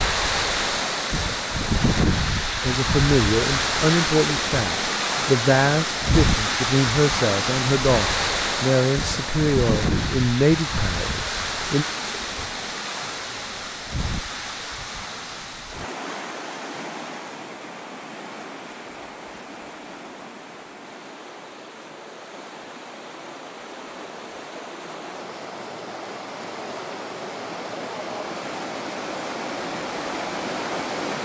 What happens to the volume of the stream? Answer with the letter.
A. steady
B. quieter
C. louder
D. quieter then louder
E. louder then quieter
D.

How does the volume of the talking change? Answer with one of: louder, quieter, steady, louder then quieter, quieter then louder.
steady.